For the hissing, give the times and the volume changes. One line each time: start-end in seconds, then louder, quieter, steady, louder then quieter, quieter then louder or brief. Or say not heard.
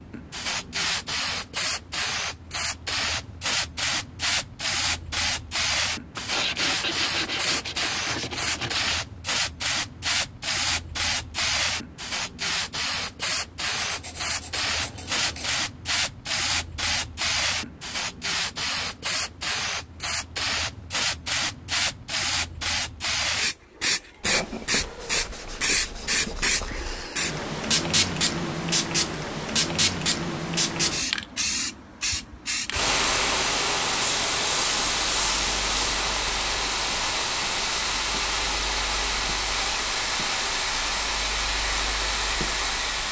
0.0-43.0 steady.